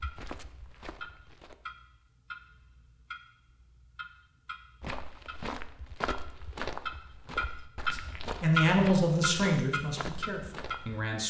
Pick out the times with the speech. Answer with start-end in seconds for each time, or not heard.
7.9-11.2.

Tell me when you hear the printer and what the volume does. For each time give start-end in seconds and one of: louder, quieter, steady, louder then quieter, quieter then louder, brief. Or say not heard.
not heard.